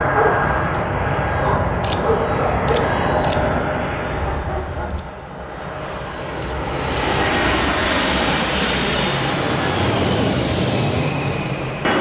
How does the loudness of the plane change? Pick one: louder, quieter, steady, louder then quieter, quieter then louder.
quieter then louder.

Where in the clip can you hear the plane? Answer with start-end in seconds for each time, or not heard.
0.0-11.9.